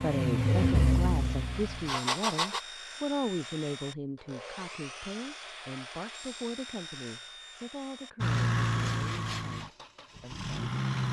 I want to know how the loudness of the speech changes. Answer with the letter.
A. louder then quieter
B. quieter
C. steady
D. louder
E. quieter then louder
B.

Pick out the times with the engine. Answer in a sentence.
You can hear the engine from 0.0 to 2.6 s and from 8.2 to 11.0 s.